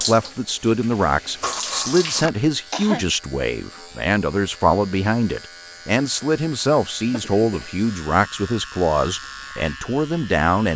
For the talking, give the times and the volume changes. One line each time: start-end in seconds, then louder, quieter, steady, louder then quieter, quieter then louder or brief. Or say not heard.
0.0-10.7 steady.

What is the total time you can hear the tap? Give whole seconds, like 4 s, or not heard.
2 s.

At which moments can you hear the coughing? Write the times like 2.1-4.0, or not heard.
2.2-3.0, 7.0-7.7.